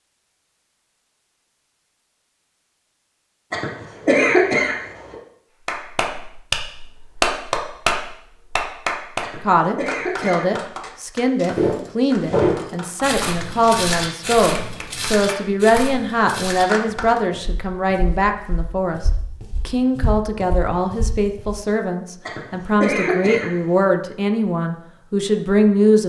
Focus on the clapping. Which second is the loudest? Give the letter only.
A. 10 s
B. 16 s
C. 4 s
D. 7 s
D.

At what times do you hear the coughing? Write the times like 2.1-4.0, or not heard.
3.5-5.2, 9.2-10.8, 22.2-23.9.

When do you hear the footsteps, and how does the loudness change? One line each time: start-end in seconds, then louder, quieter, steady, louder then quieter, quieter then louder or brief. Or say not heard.
11.6-21.6 quieter then louder.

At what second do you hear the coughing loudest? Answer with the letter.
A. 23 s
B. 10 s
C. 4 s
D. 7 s
C.